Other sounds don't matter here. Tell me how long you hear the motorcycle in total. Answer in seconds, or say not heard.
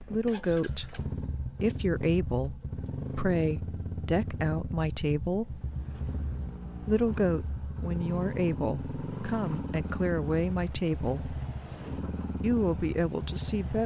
14 s.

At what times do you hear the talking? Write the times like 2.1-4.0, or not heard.
0.0-5.6, 6.8-11.3, 12.4-13.8.